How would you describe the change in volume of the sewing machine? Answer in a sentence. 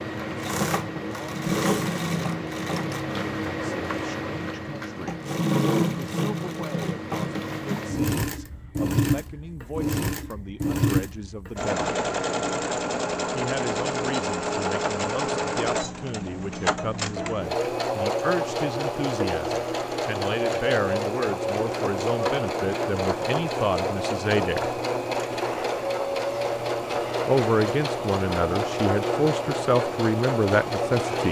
The volume of the sewing machine stays about the same.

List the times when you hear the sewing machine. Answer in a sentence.
You can hear the sewing machine from 0.0 to 31.2 s.